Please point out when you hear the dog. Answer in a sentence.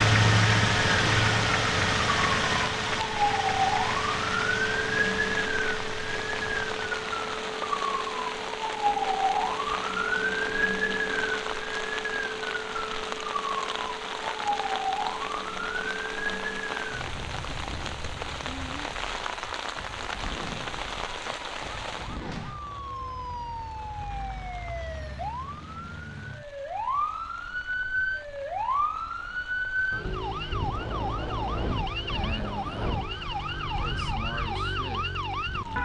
The dog can't be heard in this clip.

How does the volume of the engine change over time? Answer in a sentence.
The loudness of the engine goes down.